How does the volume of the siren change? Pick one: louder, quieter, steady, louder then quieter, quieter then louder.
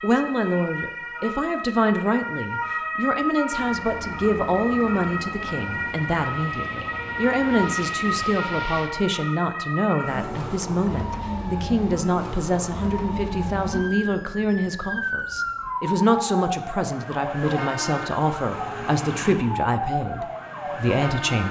steady.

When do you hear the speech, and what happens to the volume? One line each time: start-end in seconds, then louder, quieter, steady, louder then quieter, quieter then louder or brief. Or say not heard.
0.0-21.4 steady.